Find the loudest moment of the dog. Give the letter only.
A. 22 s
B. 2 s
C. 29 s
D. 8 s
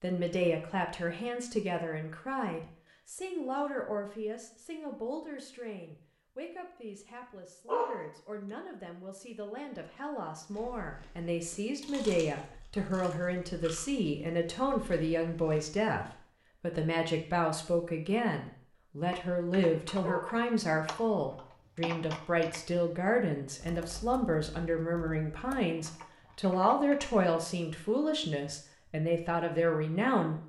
D.